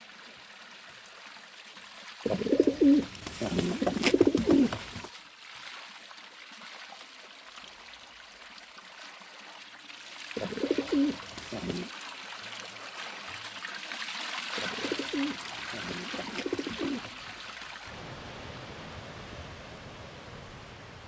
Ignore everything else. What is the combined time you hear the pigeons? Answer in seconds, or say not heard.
7 s.